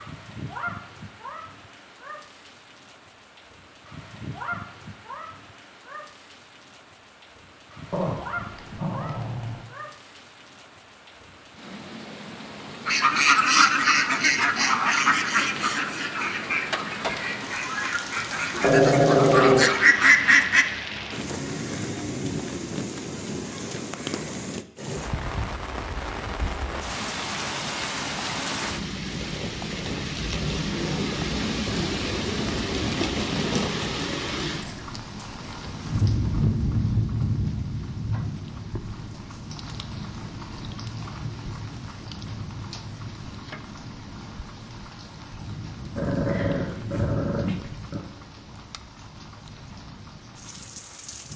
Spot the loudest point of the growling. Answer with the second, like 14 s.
19 s.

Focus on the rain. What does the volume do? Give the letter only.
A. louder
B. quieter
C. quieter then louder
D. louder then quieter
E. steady
D.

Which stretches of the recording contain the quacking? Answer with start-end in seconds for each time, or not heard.
12.8-20.6.